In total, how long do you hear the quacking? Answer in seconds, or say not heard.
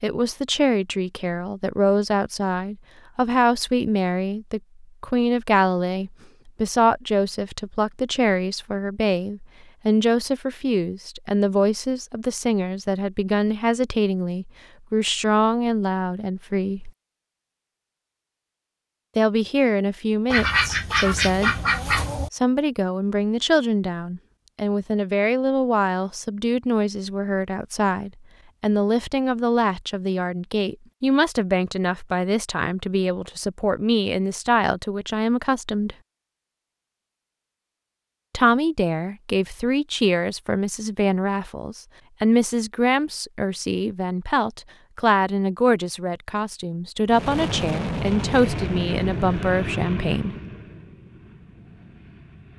2 s.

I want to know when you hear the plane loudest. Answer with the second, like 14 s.
48 s.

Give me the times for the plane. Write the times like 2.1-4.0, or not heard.
47.0-52.5.